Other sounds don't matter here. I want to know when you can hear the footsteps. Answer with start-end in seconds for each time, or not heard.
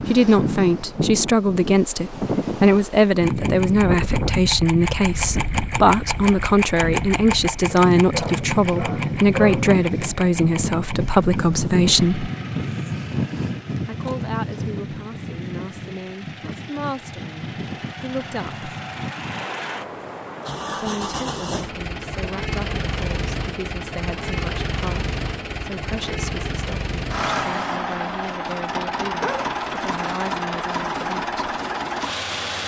not heard.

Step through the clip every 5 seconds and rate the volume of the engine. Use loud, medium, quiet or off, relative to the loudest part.
loud, loud, quiet, medium, loud, loud, loud.